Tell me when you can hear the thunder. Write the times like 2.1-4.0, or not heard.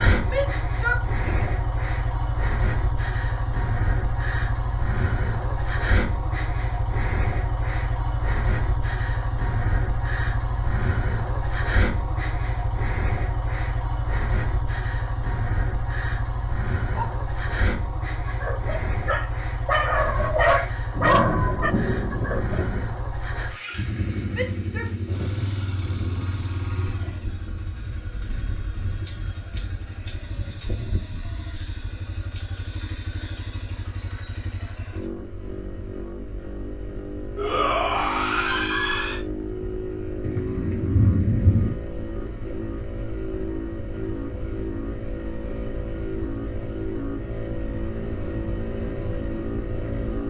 20.9-22.9, 40.2-41.8.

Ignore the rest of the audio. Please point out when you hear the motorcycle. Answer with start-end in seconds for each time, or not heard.
0.0-50.2.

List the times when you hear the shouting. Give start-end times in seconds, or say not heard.
0.2-1.5, 24.3-24.9, 37.4-39.2.